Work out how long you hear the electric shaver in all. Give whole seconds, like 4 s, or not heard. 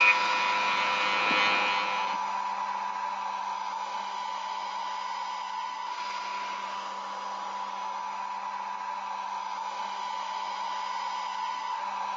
2 s.